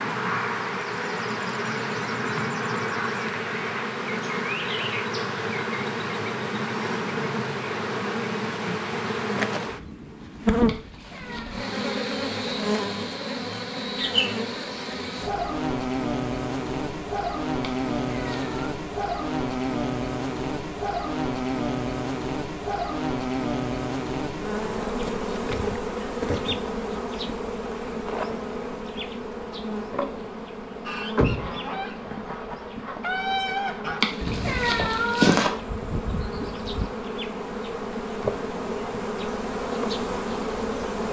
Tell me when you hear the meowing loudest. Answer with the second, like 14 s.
35 s.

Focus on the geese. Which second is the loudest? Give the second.
33 s.